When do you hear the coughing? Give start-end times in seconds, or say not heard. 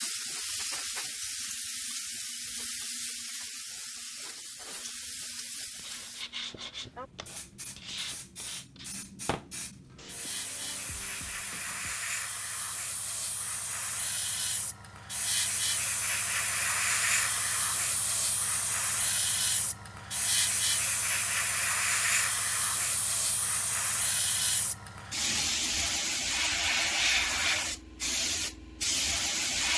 not heard.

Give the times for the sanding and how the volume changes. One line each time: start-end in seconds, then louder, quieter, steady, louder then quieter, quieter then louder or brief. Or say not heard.
5.5-12.0 quieter.